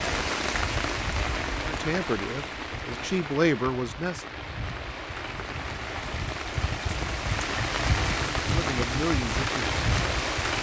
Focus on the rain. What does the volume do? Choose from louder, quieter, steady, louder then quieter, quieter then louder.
quieter then louder.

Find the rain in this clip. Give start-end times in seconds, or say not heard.
0.0-10.5.